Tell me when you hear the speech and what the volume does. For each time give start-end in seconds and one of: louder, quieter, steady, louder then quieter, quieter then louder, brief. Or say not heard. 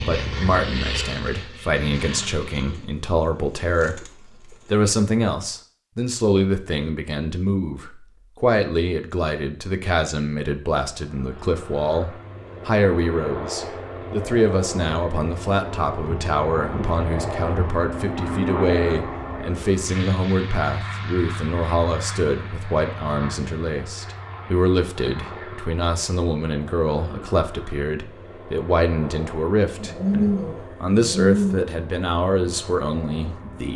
0.1-33.7 steady.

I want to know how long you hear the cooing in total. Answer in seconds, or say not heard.
4 s.